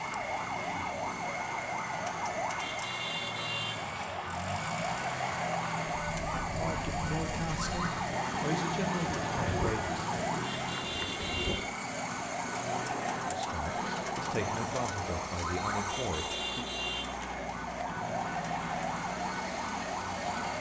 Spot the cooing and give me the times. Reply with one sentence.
The cooing can't be heard in this clip.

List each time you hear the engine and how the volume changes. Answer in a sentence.
The engine can be heard from 0.0 to 20.5 s, at a steady volume.